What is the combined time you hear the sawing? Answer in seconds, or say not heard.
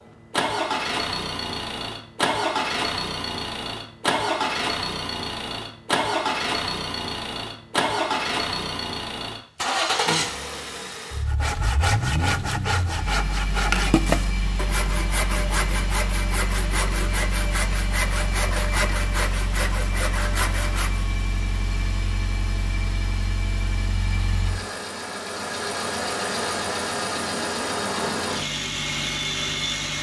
10 s.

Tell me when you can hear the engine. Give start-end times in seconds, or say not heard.
0.0-29.9.